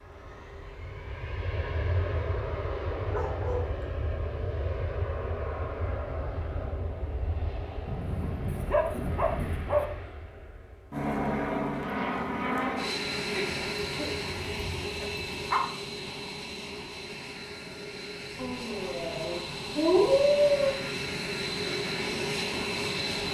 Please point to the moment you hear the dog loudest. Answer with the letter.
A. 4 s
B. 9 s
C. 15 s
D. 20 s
D.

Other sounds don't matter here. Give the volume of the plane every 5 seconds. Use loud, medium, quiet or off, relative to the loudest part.
medium, medium, loud, medium, loud.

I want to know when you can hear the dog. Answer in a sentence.
You can hear the dog from 3.1 to 3.9 s, from 7.8 to 9.8 s, from 13.3 to 15.6 s and from 18.4 to 20.7 s.